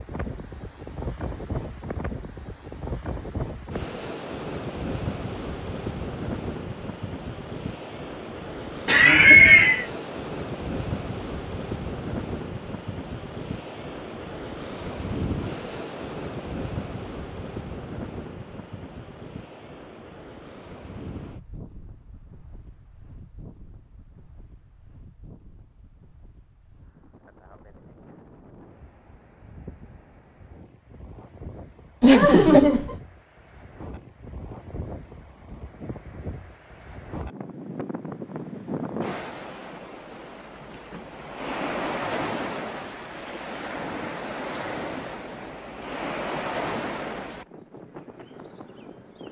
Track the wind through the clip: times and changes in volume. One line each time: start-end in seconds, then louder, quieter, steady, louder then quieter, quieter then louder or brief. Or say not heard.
0.0-49.2 quieter then louder.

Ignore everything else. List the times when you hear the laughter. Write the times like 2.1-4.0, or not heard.
8.8-9.8, 32.0-33.0.